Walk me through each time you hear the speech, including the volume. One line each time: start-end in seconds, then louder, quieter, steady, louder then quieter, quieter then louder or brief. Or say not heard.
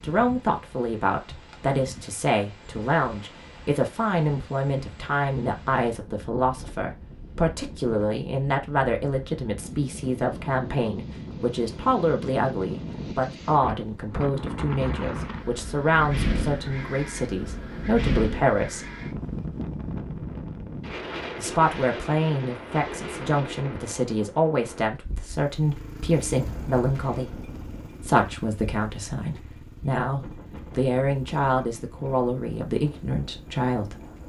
0.0-18.9 steady
21.4-34.0 steady.